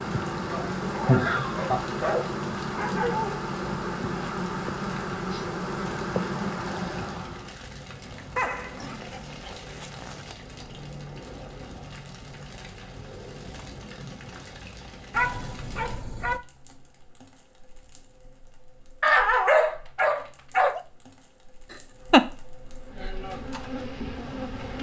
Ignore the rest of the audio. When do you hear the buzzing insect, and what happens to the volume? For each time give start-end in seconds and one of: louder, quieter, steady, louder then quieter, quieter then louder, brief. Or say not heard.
0.0-7.5 steady
22.6-24.7 brief.